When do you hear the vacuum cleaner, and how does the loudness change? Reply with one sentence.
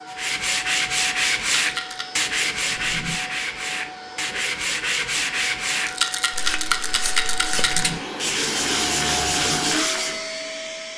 You can hear the vacuum cleaner from 0.0 to 10.9 s, getting louder.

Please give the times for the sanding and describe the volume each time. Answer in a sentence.
You can hear the sanding from 0.1 to 10.2 s, getting quieter then louder.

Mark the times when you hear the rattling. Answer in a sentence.
The rattling can be heard from 1.6 to 2.0 s and from 5.8 to 7.8 s.